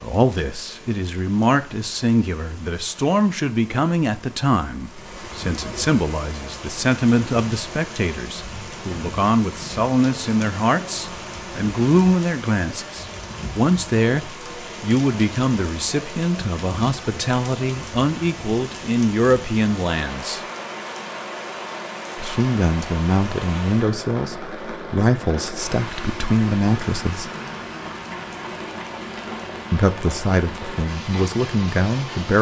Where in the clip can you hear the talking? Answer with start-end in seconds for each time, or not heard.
0.0-20.4, 22.1-27.3, 29.7-32.3.